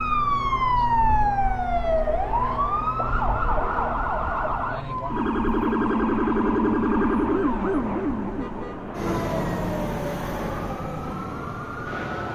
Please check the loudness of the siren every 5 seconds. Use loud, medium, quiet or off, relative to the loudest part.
loud, loud, medium.